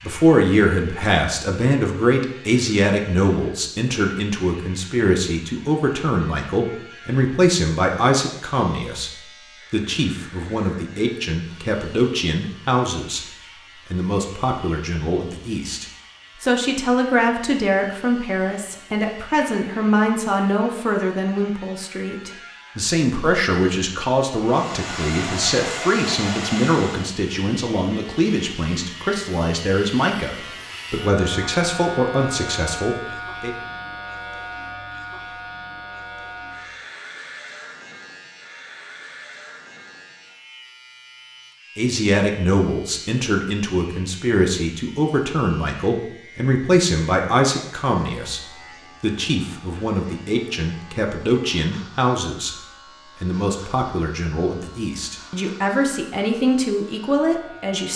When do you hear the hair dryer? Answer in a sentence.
You can hear the hair dryer from 24.4 to 27.1 s.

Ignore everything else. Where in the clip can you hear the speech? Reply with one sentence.
You can hear the speech from 0.0 to 13.2 s, from 13.9 to 33.5 s, from 41.8 to 52.5 s and from 53.2 to 57.9 s.